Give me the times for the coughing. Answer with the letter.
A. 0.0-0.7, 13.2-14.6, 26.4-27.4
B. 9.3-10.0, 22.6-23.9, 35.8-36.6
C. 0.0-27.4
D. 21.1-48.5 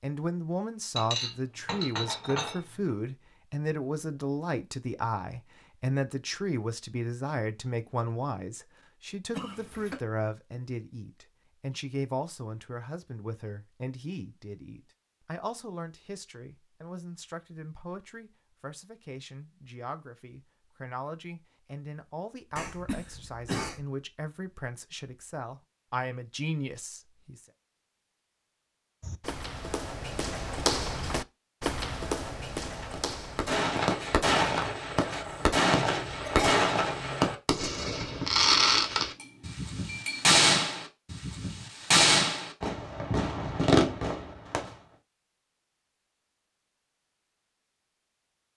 B.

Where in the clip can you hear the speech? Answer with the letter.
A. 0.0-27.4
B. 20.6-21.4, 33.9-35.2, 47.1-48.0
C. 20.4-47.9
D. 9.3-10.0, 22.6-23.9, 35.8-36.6
A.